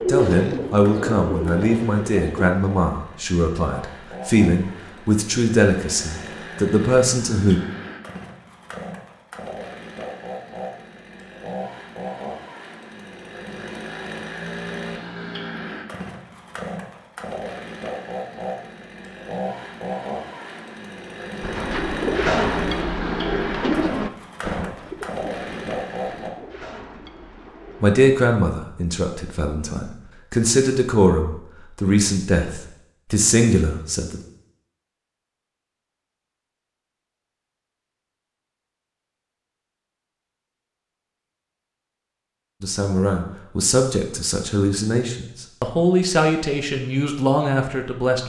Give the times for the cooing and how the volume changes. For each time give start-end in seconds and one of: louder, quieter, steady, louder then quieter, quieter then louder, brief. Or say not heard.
0.0-2.5 brief
21.4-27.9 quieter.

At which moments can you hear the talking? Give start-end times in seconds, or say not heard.
0.1-7.6, 27.8-34.2, 42.6-48.2.